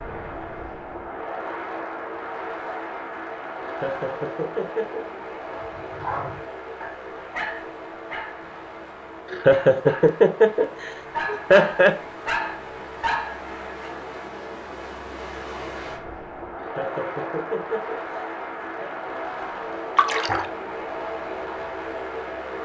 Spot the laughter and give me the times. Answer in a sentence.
You can hear the laughter from 3.6 to 5.0 s, from 9.3 to 11.9 s and from 16.6 to 18.9 s.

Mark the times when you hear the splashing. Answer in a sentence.
The splashing can be heard from 19.9 to 20.4 s.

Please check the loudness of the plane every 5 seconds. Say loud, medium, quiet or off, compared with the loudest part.
loud, medium, medium, loud, loud.